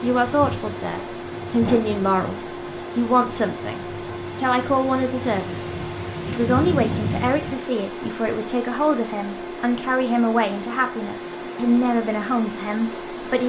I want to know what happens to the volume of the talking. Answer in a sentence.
The loudness of the talking stays about the same.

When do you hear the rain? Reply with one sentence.
The rain can be heard from 0.0 to 7.6 s.